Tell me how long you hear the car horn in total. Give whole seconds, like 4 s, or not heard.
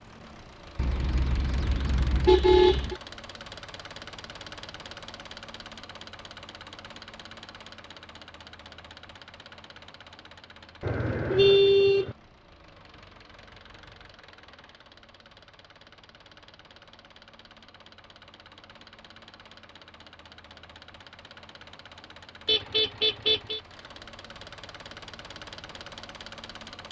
5 s.